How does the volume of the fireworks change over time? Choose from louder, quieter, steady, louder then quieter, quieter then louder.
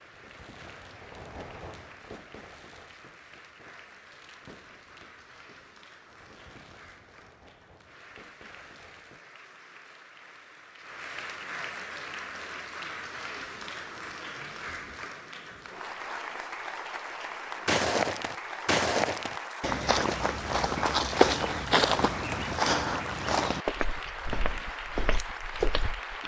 quieter.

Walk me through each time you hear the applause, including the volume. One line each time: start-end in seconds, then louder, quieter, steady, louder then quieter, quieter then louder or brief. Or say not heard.
0.0-26.2 louder.